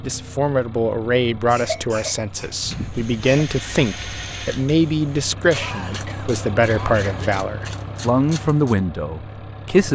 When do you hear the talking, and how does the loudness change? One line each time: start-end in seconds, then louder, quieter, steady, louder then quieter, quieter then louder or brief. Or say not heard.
0.0-9.9 steady.